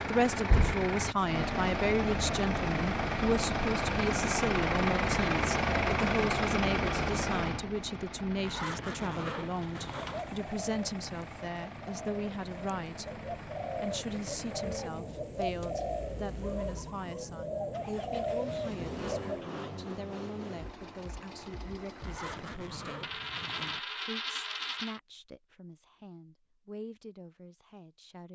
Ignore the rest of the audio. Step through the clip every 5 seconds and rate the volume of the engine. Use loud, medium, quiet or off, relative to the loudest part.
loud, loud, quiet, quiet, quiet, off.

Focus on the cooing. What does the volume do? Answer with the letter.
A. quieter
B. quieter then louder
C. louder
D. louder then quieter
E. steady
C.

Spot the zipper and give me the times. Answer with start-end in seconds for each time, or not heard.
8.4-10.2, 22.0-23.8.